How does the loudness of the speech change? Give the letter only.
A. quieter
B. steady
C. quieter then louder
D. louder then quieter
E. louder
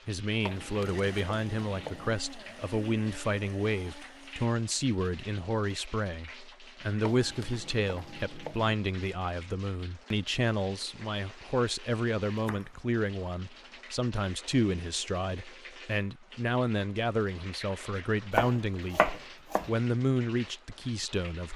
B.